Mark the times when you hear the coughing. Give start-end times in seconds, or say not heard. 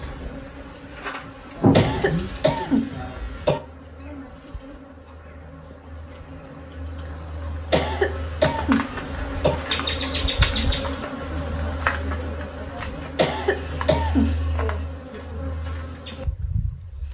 1.7-3.6, 7.7-9.6, 13.2-14.4.